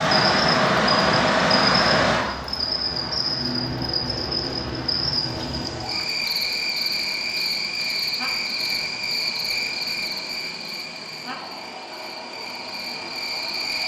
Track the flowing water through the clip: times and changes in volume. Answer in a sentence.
The flowing water can be heard from 0.0 to 13.8 s, getting quieter.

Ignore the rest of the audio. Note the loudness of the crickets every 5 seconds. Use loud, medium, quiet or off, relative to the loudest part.
loud, loud, medium.